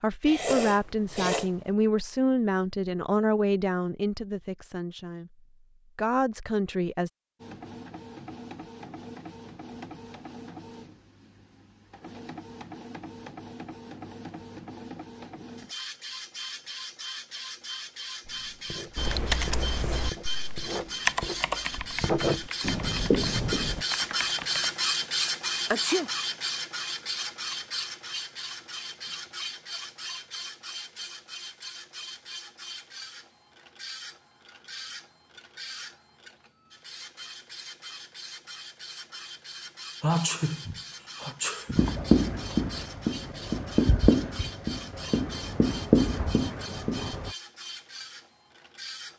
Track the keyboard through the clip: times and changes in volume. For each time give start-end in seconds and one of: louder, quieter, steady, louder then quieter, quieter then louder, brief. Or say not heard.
18.9-24.8 louder then quieter.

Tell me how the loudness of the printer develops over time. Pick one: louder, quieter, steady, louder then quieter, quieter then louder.
louder then quieter.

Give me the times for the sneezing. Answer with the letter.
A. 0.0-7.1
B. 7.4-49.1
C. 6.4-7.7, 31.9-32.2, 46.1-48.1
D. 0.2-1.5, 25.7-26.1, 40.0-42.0
D.